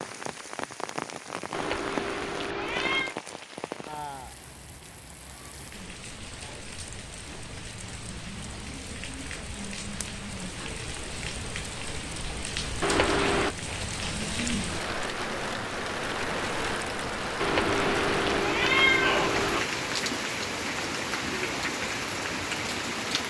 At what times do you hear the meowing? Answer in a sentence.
You can hear the meowing from 1.5 to 3.1 s, from 12.8 to 13.6 s and from 17.4 to 19.6 s.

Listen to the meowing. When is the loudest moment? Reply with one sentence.
The loudest moment of the meowing is at 19 seconds.